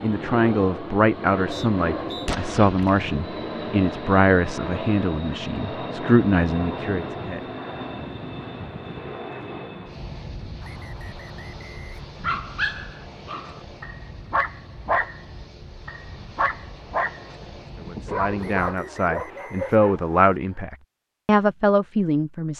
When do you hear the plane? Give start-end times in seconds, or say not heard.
0.0-18.8.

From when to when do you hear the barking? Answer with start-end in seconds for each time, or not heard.
12.2-20.1.